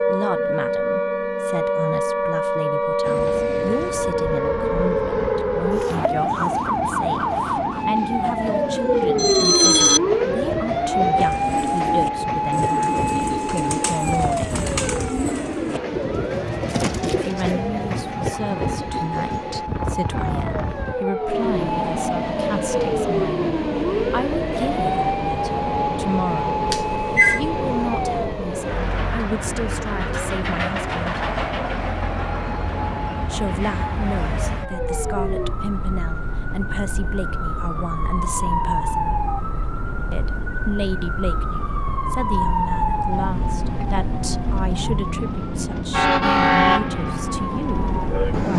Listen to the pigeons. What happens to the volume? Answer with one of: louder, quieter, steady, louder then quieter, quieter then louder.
steady.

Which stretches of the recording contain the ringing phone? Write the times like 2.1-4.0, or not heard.
9.2-10.0, 26.7-27.4.